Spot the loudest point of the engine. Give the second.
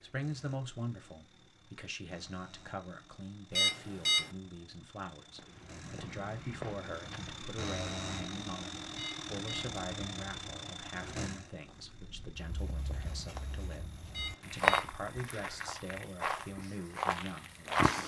8 s.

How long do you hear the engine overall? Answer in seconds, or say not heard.
18 s.